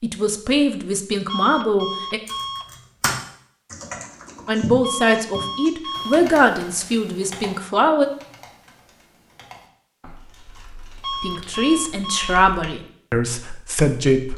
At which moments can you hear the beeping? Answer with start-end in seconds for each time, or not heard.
1.2-2.8, 4.8-6.3, 11.0-12.3.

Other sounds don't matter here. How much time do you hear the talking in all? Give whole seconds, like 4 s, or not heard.
9 s.